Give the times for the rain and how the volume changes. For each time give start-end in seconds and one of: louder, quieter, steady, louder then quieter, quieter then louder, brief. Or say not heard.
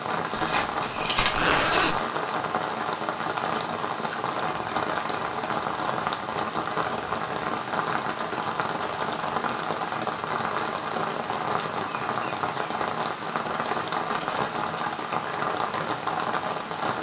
0.0-16.9 steady.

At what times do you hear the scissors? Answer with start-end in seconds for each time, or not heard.
0.3-1.6, 13.4-14.6.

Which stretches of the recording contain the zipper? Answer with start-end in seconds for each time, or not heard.
1.1-2.0.